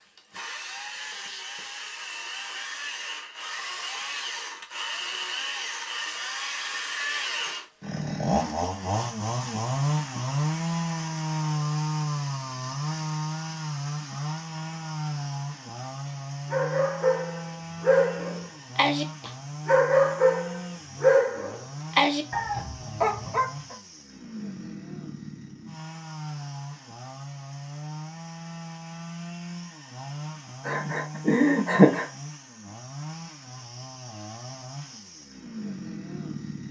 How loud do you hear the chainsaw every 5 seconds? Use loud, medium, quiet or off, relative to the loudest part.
medium, loud, loud, medium, medium, medium, medium, medium.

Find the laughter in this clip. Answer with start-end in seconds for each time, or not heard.
30.6-32.0.